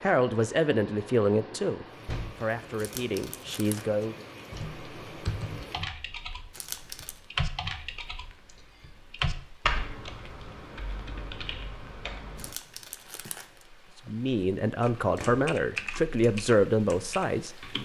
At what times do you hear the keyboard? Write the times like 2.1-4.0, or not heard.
4.5-12.6, 14.8-17.8.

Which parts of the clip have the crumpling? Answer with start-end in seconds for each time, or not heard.
2.8-3.9, 6.5-7.2, 12.3-13.7.